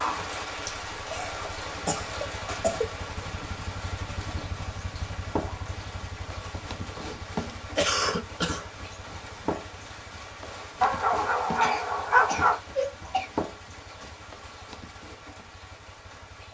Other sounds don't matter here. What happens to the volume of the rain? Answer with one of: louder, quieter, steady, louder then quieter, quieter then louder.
quieter.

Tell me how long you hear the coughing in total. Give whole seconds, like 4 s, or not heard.
5 s.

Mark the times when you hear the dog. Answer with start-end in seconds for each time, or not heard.
10.8-12.6.